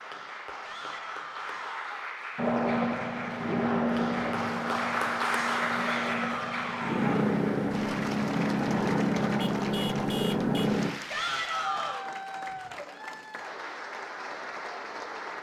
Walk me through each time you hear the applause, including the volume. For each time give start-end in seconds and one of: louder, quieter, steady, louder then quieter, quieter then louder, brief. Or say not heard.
0.0-15.3 louder then quieter.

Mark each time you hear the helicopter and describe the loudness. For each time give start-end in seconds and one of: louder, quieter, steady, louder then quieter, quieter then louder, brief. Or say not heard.
2.4-10.9 quieter then louder.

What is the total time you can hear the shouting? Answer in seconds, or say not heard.
4 s.